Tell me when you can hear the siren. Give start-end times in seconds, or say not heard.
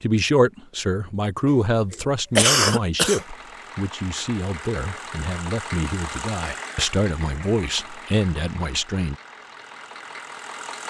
not heard.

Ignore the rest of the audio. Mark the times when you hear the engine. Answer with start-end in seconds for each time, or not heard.
3.0-10.8.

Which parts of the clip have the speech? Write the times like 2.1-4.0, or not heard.
0.0-9.2.